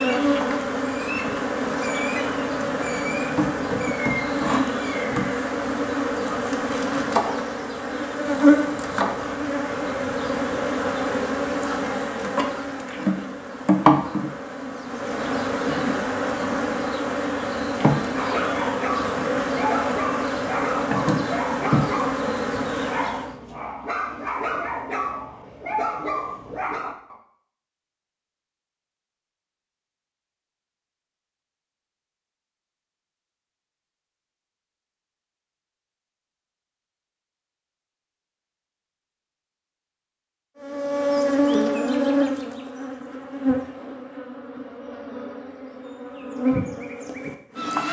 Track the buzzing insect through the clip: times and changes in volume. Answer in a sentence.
The buzzing insect can be heard from 0.0 to 23.4 s, at a steady volume; and from 40.6 to 47.8 s, getting quieter then louder.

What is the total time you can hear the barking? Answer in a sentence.
The barking can be heard for 9 seconds in total.